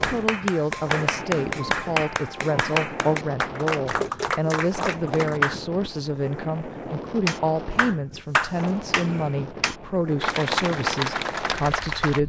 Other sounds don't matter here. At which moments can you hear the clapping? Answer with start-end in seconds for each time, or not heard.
0.0-5.6, 7.2-12.2.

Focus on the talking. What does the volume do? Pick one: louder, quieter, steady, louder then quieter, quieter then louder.
steady.